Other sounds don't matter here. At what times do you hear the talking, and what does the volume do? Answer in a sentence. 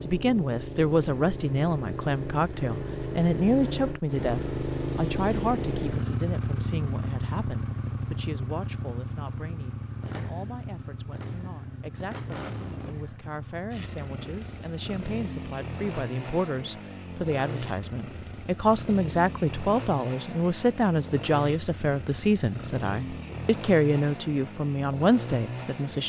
The talking can be heard from 0.0 to 26.0 s, getting quieter then louder.